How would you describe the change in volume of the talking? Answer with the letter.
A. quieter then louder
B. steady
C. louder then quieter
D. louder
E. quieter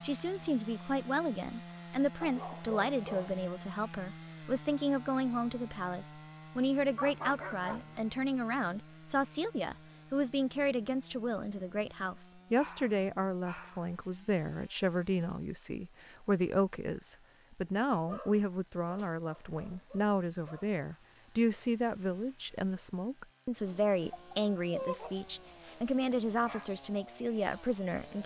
B.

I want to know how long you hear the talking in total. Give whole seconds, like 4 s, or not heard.
28 s.